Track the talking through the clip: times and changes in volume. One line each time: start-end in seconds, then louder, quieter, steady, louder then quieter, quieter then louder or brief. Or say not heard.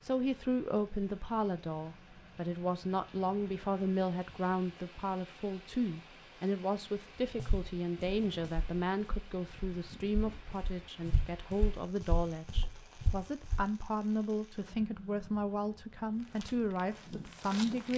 0.0-17.9 steady.